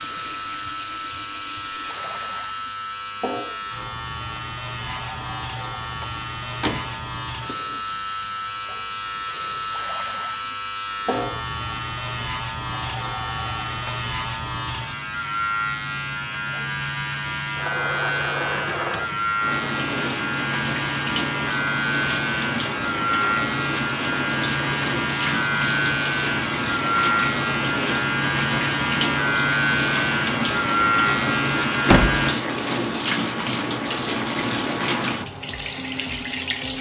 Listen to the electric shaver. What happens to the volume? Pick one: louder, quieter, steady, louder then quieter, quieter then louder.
louder.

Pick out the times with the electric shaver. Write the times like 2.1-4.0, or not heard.
0.0-32.4.